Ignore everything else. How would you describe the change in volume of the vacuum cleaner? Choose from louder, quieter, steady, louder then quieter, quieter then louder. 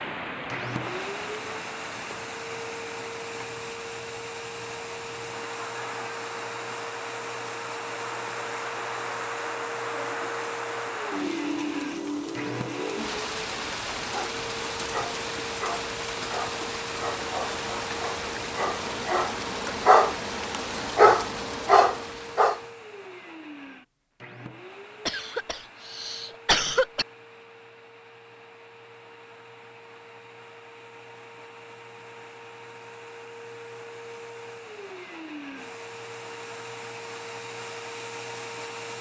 quieter then louder.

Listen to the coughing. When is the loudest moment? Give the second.
27 s.